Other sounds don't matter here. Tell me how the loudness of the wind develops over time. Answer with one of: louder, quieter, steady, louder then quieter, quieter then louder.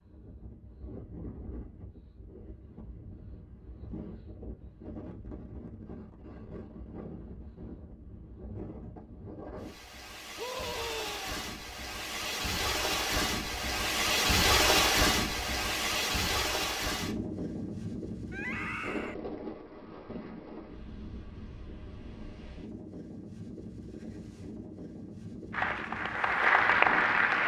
louder then quieter.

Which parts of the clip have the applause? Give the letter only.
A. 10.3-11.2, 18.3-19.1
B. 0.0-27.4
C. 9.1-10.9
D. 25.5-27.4
D.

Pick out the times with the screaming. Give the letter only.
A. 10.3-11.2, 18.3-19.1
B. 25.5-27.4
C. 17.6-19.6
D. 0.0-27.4
A.